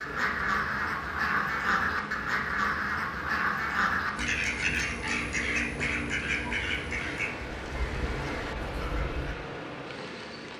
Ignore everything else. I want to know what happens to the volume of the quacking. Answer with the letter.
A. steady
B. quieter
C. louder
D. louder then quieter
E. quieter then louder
B.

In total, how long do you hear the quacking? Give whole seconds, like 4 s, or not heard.
9 s.